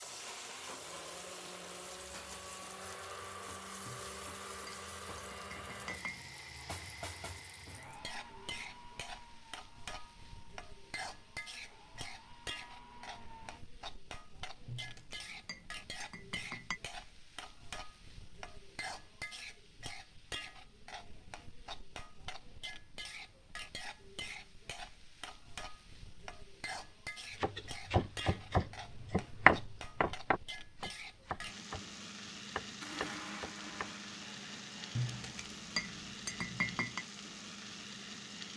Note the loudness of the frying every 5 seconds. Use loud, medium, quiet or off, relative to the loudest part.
medium, loud, loud, loud, loud, loud, loud, loud.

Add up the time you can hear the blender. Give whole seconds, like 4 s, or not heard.
16 s.